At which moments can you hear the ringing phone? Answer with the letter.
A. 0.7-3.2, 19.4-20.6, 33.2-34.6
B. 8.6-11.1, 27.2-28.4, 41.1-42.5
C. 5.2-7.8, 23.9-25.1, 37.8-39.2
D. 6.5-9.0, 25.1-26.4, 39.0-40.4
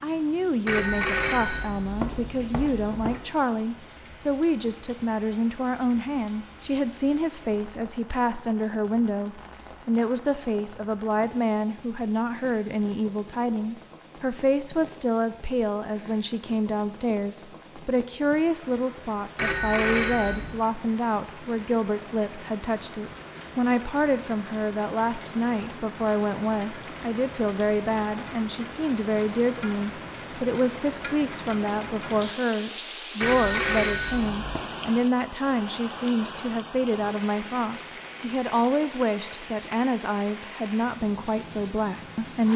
A.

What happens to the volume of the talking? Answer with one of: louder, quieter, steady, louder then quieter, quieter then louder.
steady.